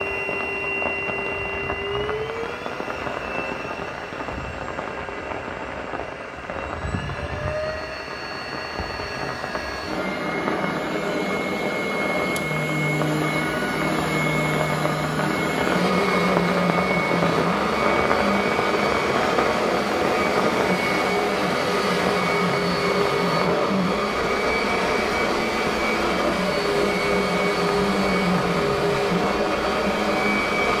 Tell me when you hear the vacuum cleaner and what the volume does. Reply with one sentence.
The vacuum cleaner can be heard from 0.0 to 30.7 s, getting louder.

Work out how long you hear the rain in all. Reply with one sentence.
The rain can be heard for 31 seconds in total.